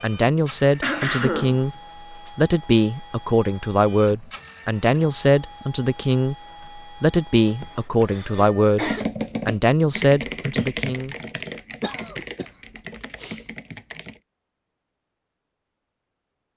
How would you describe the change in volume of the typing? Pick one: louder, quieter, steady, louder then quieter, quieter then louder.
quieter.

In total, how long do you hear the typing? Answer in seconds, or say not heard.
5 s.